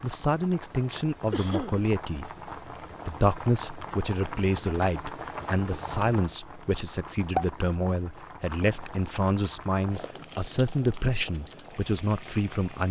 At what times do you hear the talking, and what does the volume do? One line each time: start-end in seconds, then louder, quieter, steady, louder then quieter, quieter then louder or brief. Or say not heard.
0.0-2.3 brief
3.0-12.8 steady.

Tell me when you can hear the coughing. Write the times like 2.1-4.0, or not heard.
1.3-1.8.